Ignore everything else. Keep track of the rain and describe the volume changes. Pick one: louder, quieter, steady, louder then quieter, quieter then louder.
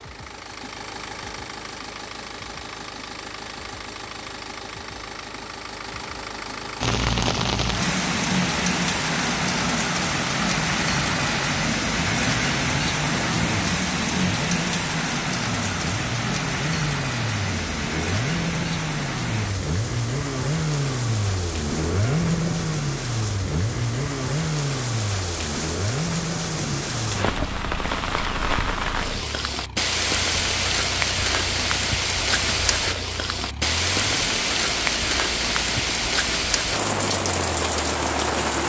quieter then louder.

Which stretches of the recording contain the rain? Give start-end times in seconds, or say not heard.
6.8-38.6.